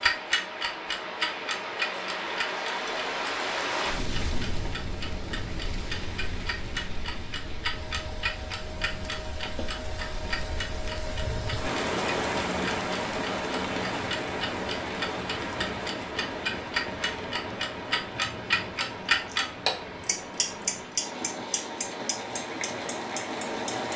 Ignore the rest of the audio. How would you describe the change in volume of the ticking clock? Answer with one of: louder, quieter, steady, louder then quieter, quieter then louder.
quieter then louder.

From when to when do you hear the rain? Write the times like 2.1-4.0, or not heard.
0.0-23.9.